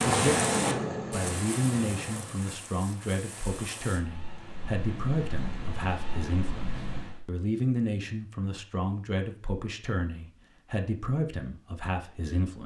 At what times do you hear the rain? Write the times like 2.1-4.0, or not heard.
0.0-7.2.